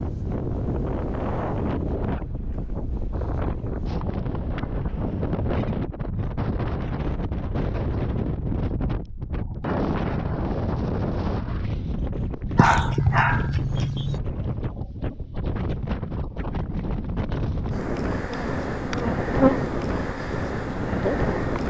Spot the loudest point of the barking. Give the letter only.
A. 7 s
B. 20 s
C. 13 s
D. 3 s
C.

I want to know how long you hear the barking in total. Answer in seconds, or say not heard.
2 s.